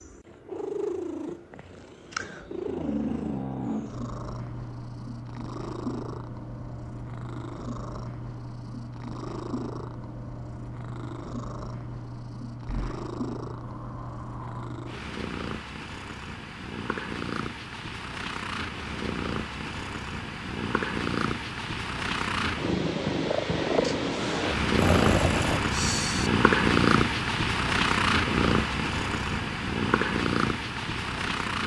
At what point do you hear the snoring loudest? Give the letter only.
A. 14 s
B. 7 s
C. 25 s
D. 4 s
C.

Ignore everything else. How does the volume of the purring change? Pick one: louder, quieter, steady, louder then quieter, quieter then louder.
louder.